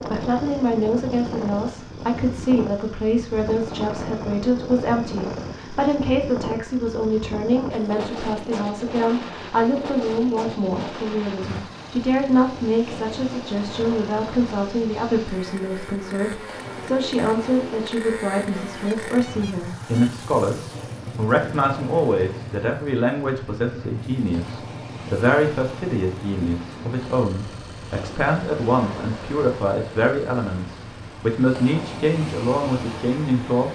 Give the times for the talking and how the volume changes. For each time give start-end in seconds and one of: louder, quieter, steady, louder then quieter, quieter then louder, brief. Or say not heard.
0.0-33.7 steady.